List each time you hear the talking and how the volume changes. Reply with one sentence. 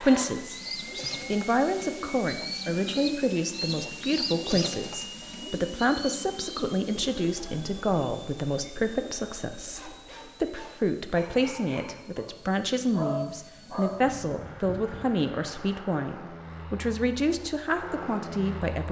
You can hear the talking briefly from 0.0 to 0.6 s; and from 1.2 to 18.8 s, at a steady volume.